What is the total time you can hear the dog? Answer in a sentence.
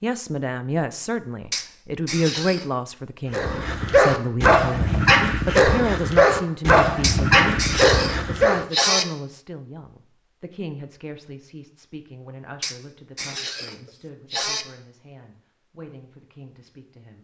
The dog can be heard for 5 seconds in total.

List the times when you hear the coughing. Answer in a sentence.
The coughing can be heard from 1.5 to 2.6 s, from 7.0 to 9.1 s and from 12.6 to 14.7 s.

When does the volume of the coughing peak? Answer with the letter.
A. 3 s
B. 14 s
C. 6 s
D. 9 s
D.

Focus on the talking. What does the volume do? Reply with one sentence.
The loudness of the talking goes down.